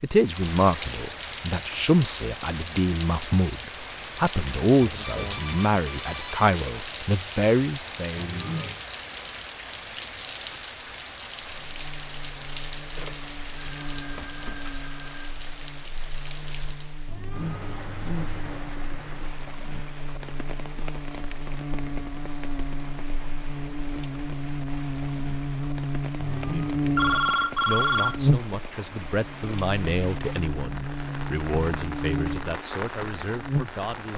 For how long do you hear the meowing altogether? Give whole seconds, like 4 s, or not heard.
3 s.